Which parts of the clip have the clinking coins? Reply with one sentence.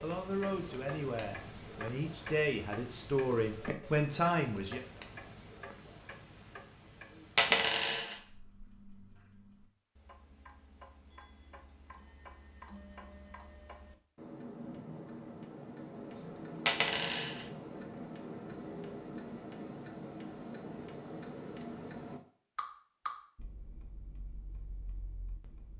You can hear the clinking coins from 7.3 to 8.2 s and from 16.6 to 17.4 s.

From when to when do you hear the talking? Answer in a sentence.
You can hear the talking from 0.0 to 4.8 s.